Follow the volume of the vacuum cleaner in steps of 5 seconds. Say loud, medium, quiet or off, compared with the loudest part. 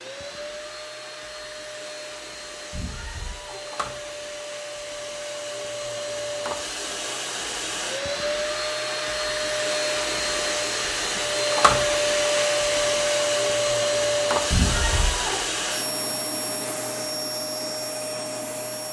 quiet, medium, loud, medium.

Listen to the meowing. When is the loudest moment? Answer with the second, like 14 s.
15 s.